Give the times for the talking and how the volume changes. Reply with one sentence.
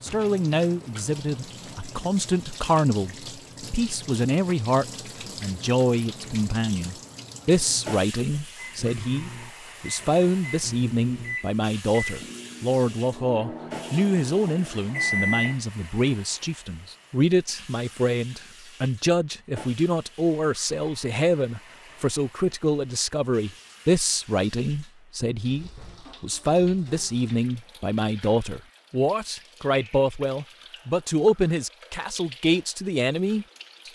You can hear the talking from 0.0 to 33.9 s, at a steady volume.